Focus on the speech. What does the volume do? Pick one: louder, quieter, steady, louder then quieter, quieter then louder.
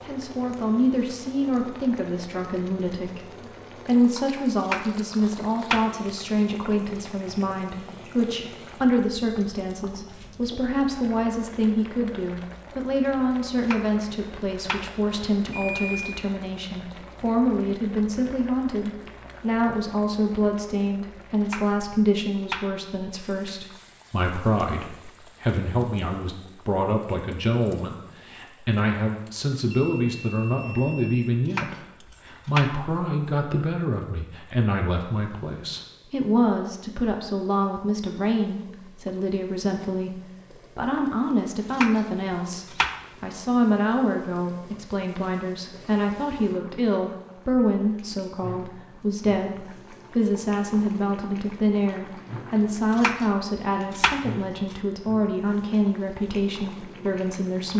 steady.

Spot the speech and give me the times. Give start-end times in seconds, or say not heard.
0.0-57.7.